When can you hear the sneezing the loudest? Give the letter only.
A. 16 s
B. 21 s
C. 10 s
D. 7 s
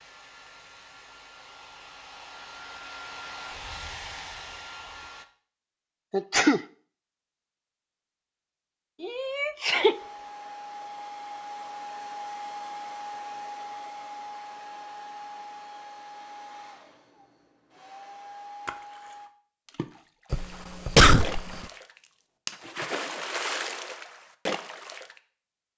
B.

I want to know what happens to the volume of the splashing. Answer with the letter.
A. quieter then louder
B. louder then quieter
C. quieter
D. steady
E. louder
E.